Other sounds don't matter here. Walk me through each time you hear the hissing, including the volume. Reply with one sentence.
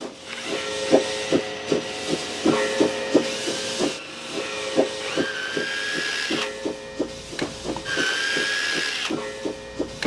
The hissing can be heard from 0.0 to 10.0 s, getting quieter.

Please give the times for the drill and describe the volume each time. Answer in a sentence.
You can hear the drill from 0.1 to 10.0 s, getting louder.